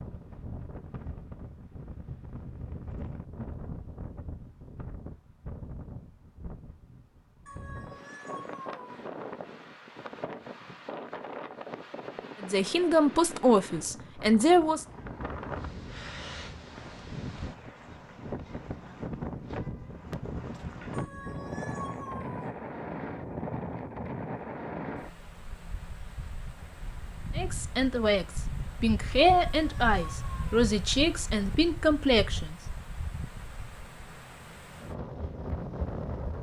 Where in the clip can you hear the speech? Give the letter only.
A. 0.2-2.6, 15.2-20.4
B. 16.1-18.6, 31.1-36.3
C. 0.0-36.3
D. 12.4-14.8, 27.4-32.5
D.